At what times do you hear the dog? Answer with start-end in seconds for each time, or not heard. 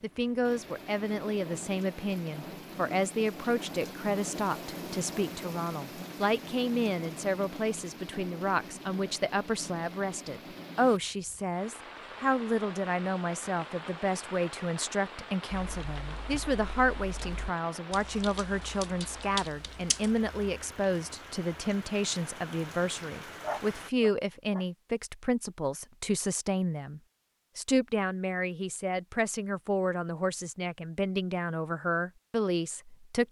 23.4-24.6.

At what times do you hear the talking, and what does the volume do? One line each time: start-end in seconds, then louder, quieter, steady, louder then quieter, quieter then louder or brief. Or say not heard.
0.0-33.2 steady.